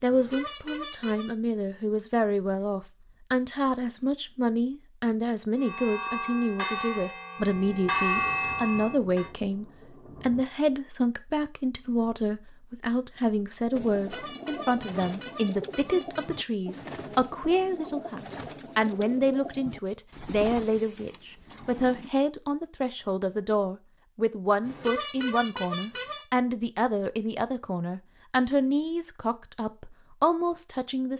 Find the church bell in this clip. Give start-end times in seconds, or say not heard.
5.5-9.3.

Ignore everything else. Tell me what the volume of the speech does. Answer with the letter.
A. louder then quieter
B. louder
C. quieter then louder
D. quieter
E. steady
E.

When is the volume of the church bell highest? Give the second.
8 s.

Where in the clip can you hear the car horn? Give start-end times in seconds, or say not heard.
0.1-1.3, 13.9-16.4, 24.6-26.2.